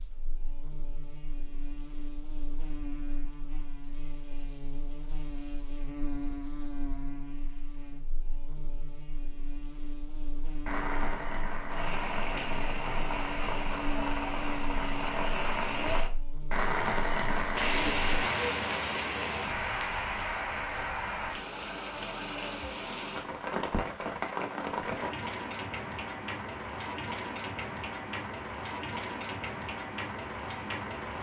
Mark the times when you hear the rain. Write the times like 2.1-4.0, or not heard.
10.7-31.1.